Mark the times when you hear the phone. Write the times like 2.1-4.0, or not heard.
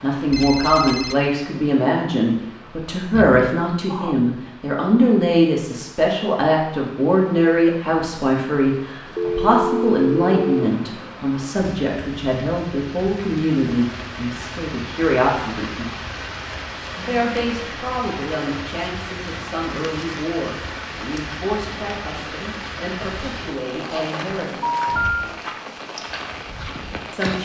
0.3-1.1, 9.2-10.7, 24.6-25.3.